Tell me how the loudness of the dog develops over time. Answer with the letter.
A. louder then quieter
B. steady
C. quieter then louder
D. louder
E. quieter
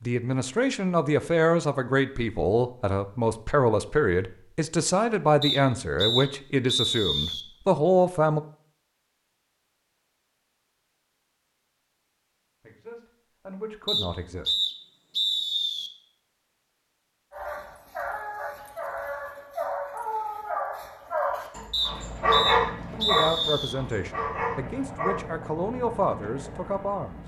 A.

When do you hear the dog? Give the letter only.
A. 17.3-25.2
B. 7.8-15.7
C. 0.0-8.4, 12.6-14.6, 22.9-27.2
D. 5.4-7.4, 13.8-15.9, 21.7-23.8
A.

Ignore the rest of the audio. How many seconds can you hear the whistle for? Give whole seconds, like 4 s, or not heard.
6 s.